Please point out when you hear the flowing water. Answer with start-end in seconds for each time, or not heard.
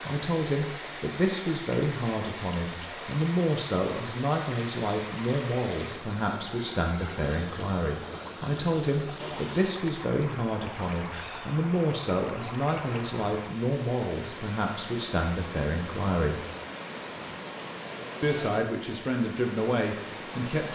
0.0-20.7.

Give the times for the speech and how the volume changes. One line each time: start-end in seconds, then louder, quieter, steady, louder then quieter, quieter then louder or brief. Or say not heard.
0.0-16.4 steady
18.2-20.7 brief.